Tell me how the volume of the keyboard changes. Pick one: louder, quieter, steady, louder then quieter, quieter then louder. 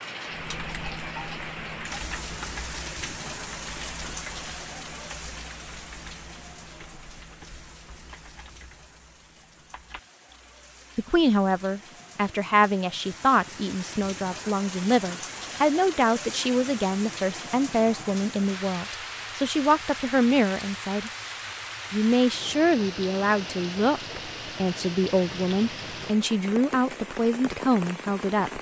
quieter.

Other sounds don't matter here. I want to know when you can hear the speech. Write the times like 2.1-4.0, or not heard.
10.9-21.1, 21.9-28.5.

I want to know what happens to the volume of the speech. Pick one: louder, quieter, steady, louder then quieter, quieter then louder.
steady.